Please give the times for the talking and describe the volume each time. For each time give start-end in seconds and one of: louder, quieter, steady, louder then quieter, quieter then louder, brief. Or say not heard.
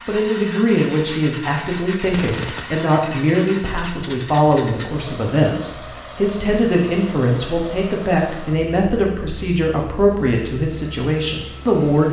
0.1-12.0 steady.